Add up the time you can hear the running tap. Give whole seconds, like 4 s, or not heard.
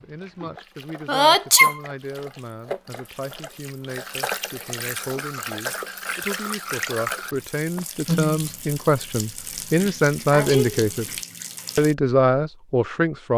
12 s.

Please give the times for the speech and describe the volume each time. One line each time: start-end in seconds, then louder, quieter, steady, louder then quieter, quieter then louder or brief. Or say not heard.
0.0-11.1 louder
11.8-13.3 brief.